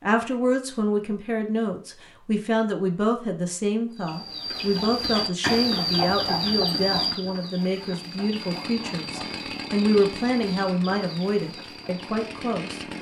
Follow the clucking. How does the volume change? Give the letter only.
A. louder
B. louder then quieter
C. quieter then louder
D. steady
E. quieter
E.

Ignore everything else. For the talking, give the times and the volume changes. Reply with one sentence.
You can hear the talking from 0.0 to 12.8 s, at a steady volume.